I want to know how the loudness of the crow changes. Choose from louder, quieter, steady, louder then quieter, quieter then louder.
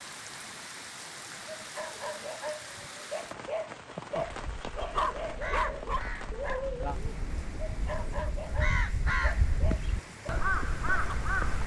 louder.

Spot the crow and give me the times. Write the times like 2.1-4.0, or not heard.
4.2-11.6.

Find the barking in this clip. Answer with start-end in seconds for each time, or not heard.
1.6-11.2.